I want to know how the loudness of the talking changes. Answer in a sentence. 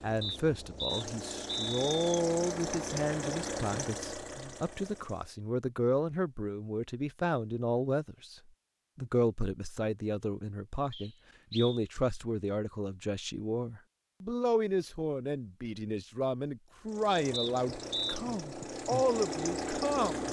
The volume of the talking stays about the same.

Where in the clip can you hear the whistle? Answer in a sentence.
The whistle can be heard from 0.2 to 2.2 s, from 10.9 to 11.8 s and from 17.3 to 18.2 s.